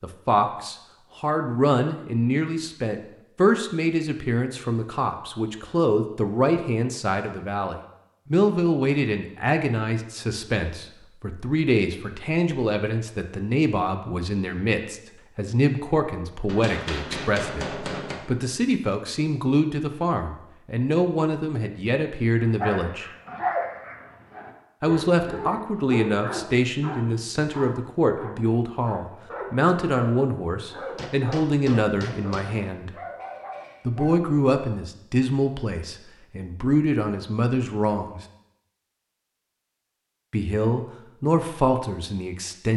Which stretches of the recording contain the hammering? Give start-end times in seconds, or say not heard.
16.4-18.2, 30.9-32.5.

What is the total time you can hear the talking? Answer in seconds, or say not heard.
38 s.